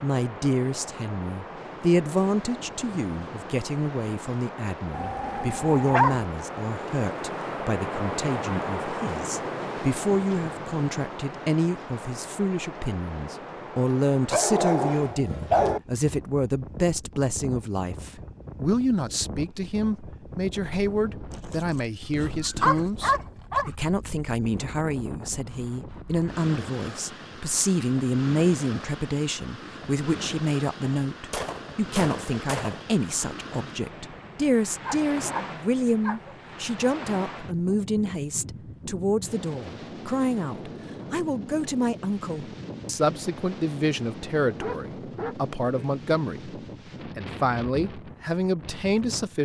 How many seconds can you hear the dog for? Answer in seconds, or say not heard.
7 s.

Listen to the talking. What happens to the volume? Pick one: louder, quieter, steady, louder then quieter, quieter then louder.
steady.